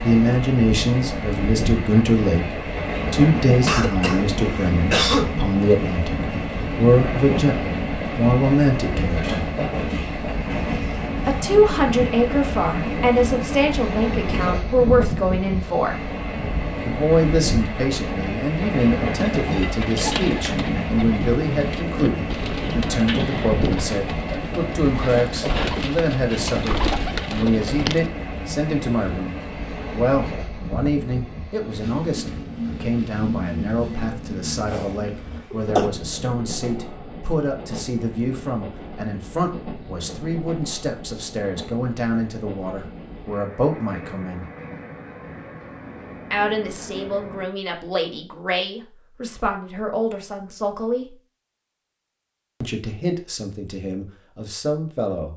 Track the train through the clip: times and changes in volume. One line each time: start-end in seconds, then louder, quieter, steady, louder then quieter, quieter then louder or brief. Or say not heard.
0.0-47.5 quieter.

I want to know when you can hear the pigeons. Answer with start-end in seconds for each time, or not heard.
19.3-28.1.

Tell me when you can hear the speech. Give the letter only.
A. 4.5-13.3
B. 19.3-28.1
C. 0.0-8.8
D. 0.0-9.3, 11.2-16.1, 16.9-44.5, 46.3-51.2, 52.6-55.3
D.